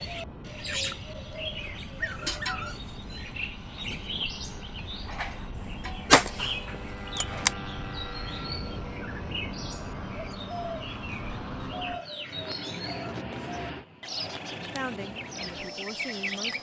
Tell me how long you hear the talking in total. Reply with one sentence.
The talking can be heard for 2 seconds in total.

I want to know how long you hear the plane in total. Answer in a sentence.
The plane can be heard for 16 seconds in total.